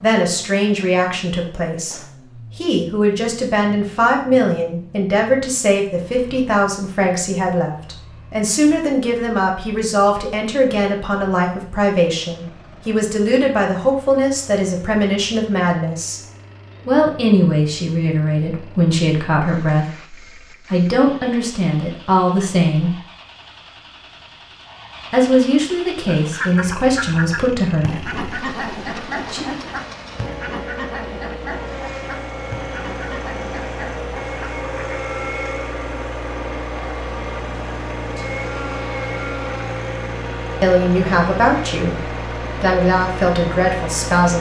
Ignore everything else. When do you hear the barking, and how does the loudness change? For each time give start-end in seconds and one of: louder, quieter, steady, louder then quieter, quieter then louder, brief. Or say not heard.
not heard.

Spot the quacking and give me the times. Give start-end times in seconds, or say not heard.
26.1-35.0.